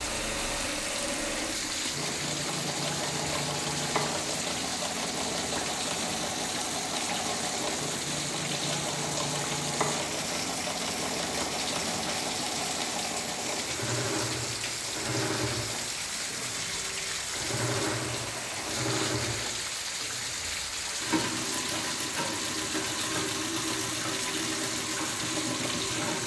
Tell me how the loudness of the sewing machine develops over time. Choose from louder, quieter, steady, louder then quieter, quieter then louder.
steady.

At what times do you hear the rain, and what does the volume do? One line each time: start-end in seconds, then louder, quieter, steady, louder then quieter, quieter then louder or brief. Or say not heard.
0.0-26.2 steady.